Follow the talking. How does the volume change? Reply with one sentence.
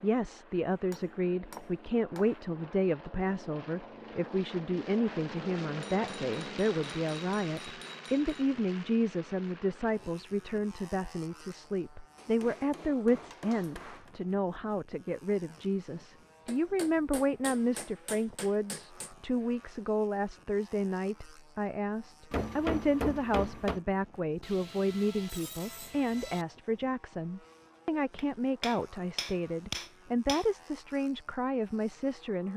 The volume of the talking stays about the same.